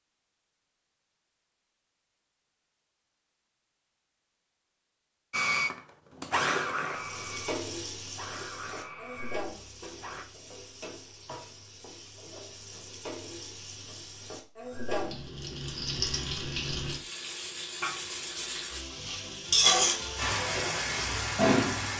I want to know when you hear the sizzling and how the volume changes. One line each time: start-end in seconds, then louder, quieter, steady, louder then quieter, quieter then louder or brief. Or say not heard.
6.8-21.9 quieter then louder.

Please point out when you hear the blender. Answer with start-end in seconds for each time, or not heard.
5.3-10.2.